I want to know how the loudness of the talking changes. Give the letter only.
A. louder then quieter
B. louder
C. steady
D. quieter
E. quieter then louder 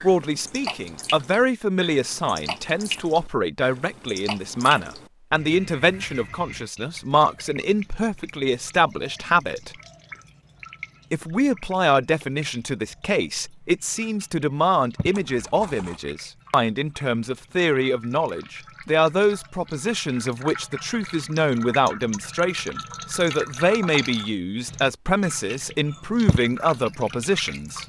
C.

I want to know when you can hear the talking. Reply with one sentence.
You can hear the talking from 0.0 to 9.7 s and from 11.1 to 27.8 s.